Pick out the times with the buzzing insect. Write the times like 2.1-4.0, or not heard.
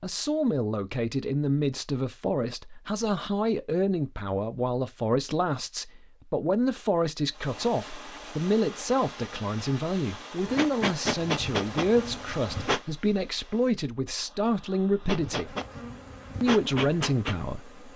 10.4-12.8, 15.0-17.9.